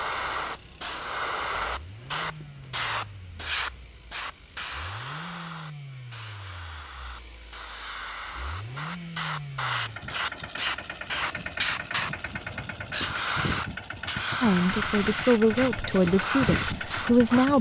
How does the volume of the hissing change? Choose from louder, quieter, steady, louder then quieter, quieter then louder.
quieter then louder.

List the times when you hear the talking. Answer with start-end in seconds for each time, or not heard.
14.4-17.5.